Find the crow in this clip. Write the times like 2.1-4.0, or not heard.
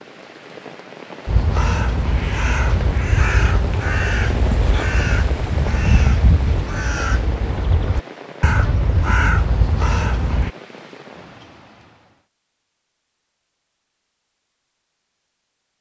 1.2-10.5.